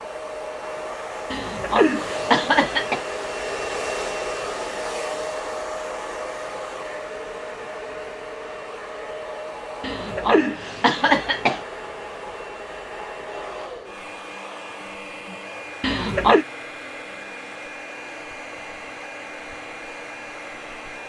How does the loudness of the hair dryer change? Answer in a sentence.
The loudness of the hair dryer goes down.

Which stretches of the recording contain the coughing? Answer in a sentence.
The coughing can be heard from 1.3 to 3.0 s, from 9.8 to 11.6 s and from 15.8 to 16.4 s.